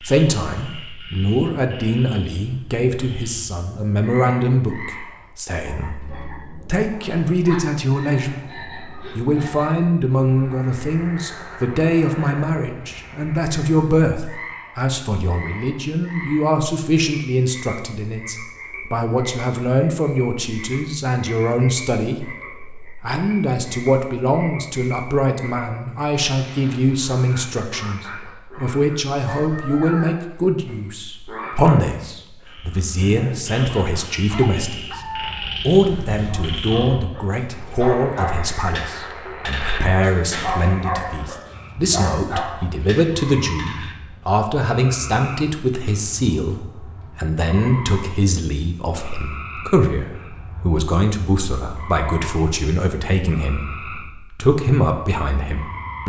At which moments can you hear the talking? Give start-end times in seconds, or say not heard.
0.0-56.0.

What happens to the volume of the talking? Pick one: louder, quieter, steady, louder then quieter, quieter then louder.
steady.